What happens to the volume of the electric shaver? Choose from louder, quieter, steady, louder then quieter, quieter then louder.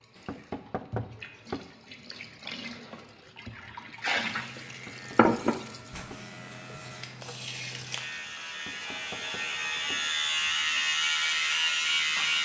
louder.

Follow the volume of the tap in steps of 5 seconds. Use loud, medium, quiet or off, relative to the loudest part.
loud, loud, quiet.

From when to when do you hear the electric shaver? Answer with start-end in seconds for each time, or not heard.
4.2-12.4.